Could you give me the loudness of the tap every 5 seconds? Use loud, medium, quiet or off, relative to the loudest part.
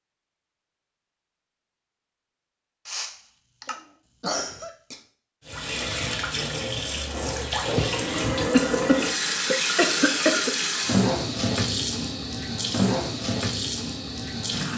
off, loud, loud.